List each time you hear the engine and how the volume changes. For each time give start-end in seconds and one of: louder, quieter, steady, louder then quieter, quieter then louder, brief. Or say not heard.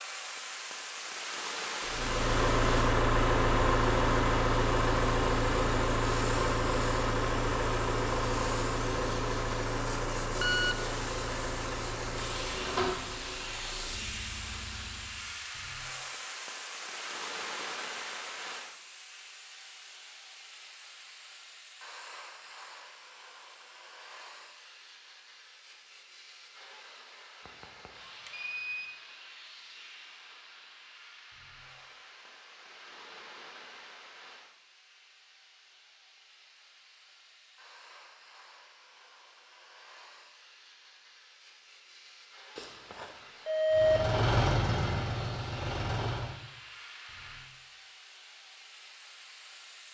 1.9-15.4 quieter
43.7-46.4 brief.